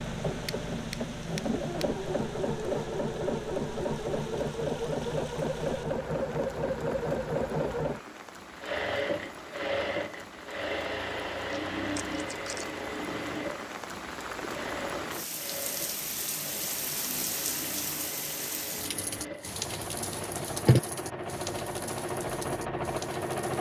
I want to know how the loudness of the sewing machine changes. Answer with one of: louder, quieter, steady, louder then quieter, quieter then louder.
quieter then louder.